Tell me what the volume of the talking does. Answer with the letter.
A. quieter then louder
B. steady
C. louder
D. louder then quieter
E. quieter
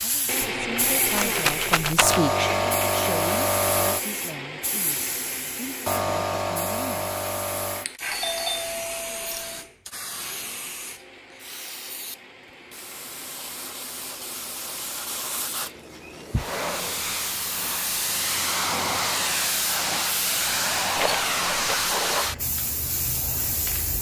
D.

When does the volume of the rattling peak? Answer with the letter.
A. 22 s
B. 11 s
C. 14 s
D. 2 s
D.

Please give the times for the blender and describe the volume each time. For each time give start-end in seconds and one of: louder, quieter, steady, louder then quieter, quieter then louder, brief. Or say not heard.
0.2-16.5 quieter.